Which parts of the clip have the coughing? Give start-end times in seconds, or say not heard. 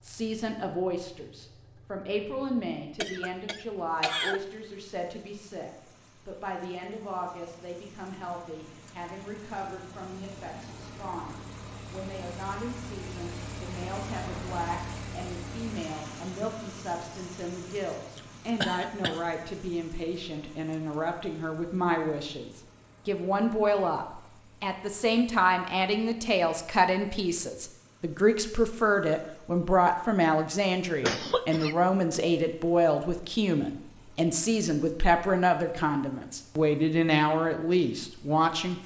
3.0-4.4, 17.7-19.2, 31.0-31.8.